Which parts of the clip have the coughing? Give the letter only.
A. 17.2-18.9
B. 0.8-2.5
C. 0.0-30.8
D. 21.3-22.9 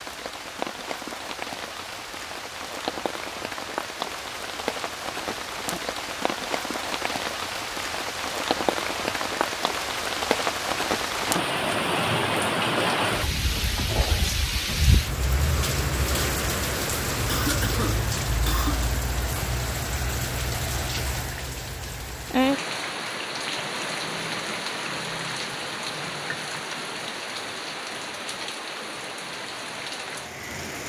A.